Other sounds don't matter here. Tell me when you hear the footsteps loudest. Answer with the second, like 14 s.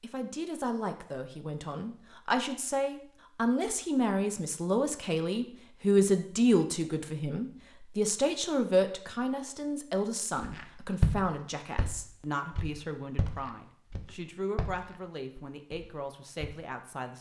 11 s.